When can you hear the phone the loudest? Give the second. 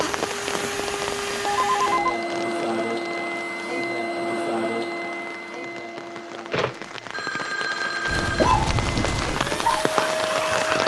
2 s.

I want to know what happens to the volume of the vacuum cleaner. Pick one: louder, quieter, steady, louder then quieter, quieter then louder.
quieter then louder.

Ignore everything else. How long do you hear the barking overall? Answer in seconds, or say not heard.
3 s.